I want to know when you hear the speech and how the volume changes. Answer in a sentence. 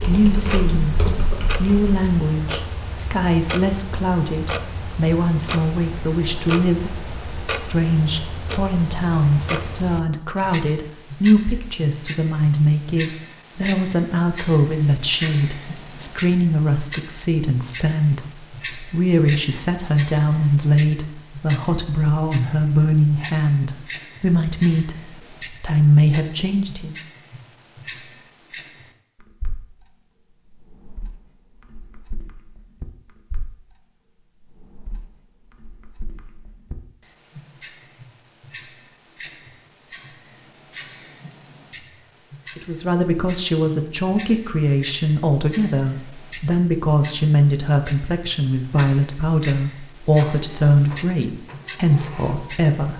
The speech can be heard from 0.0 to 26.9 s, at a steady volume; and from 42.5 to 52.9 s, at a steady volume.